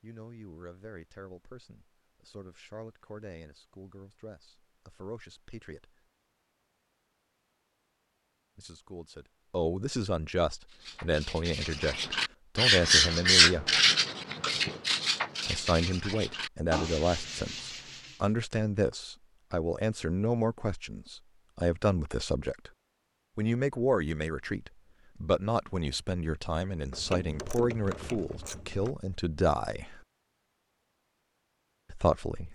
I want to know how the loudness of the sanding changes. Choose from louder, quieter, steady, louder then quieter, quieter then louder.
louder then quieter.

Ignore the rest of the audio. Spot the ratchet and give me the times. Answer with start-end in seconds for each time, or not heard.
26.9-28.9.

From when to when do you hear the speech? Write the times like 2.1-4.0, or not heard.
0.0-6.0, 8.6-13.7, 15.4-22.7, 23.4-30.0, 31.9-32.5.